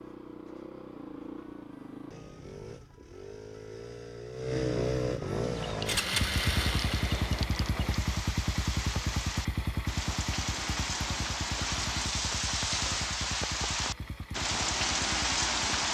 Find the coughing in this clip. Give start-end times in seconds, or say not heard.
not heard.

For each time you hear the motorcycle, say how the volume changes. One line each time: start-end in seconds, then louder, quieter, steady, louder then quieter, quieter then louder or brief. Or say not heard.
0.0-15.8 louder then quieter.